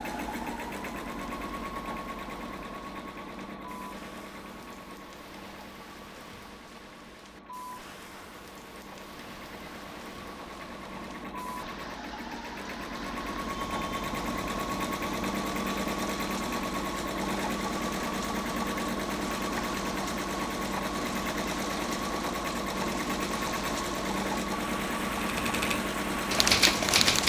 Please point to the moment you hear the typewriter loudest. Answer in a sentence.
The loudest moment of the typewriter is at 27 seconds.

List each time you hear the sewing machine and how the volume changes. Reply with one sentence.
The sewing machine can be heard from 0.0 to 27.2 s, getting quieter then louder.